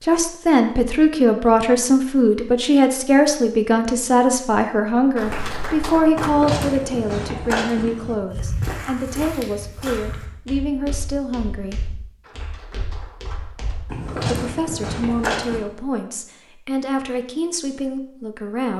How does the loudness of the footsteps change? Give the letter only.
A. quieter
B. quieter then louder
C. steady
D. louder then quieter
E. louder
B.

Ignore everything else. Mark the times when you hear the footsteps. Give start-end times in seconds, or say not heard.
5.2-15.6.